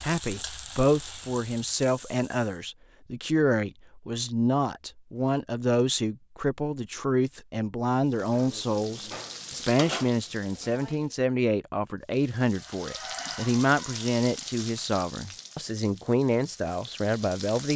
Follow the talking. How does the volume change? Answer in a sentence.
The loudness of the talking stays about the same.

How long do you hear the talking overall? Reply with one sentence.
The talking can be heard for 18 seconds in total.